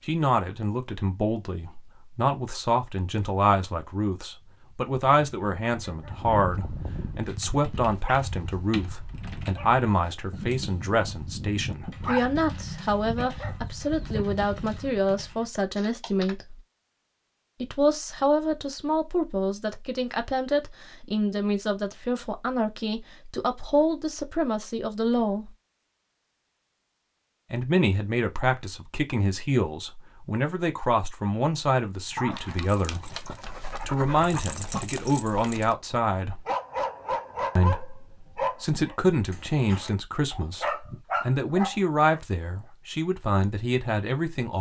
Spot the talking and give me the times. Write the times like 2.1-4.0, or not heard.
0.1-16.6, 17.6-25.5, 27.5-36.5, 37.5-44.5.